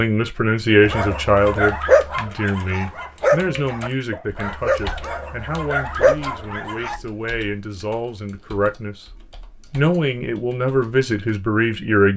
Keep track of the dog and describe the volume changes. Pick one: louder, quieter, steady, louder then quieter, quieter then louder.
quieter then louder.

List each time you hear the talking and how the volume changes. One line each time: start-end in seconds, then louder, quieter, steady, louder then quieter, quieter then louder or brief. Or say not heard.
0.0-12.1 quieter then louder.